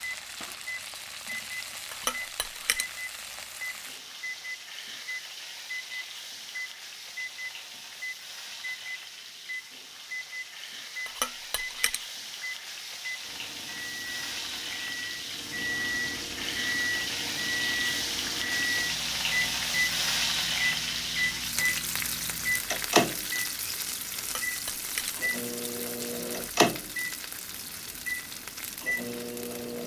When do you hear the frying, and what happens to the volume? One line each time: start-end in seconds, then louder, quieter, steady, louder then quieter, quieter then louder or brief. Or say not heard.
0.0-29.8 louder then quieter.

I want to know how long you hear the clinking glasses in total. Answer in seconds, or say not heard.
3 s.